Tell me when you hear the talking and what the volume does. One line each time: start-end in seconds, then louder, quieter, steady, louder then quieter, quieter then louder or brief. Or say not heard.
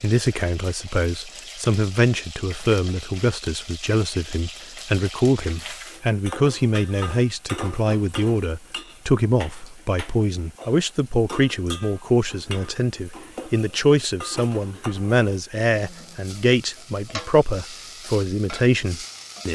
0.0-19.5 steady.